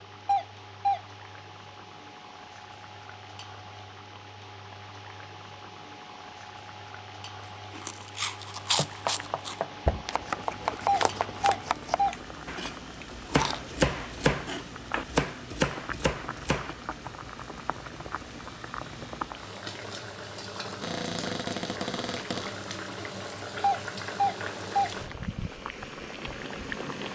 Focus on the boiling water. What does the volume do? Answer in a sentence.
The volume of the boiling water goes up.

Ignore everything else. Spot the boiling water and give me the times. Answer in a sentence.
You can hear the boiling water from 0.0 to 27.1 s.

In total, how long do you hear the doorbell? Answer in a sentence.
You can hear the doorbell for 3 seconds altogether.